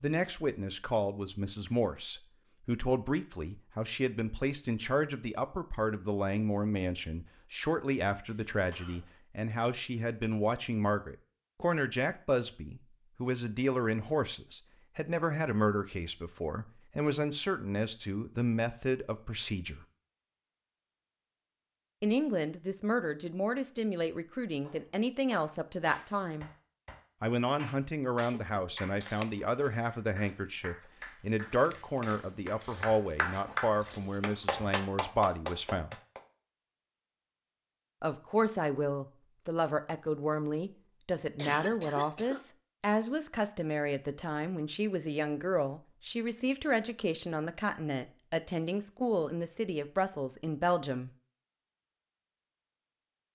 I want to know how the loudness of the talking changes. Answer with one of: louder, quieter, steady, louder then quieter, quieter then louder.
steady.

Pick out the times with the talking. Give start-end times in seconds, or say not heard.
0.0-19.9, 22.0-26.5, 27.2-36.0, 38.0-51.1.